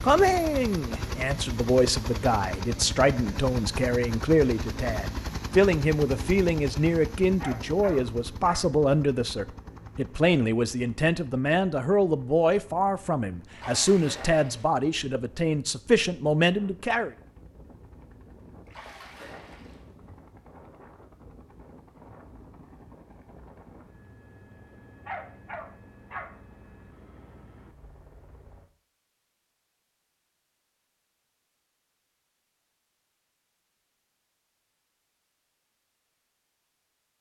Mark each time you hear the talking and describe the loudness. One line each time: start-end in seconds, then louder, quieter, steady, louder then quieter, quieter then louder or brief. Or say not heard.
0.0-17.1 steady.